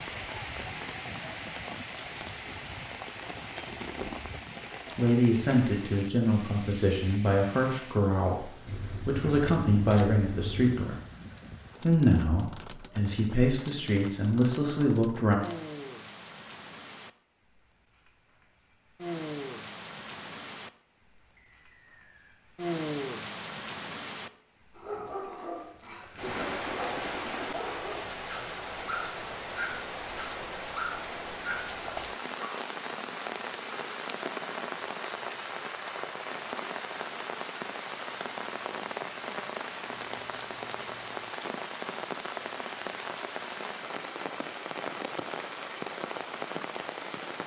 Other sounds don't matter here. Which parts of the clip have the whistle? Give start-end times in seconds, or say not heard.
21.4-22.4.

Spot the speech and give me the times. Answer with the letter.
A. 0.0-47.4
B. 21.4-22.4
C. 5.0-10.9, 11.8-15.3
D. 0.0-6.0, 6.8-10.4
C.